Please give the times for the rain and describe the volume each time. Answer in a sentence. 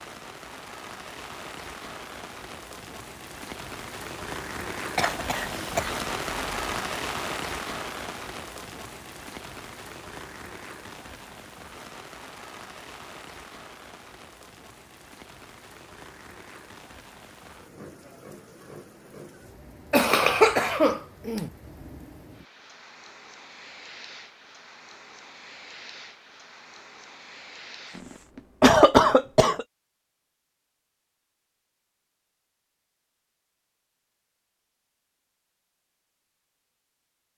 The rain can be heard from 0.0 to 28.3 s, getting quieter.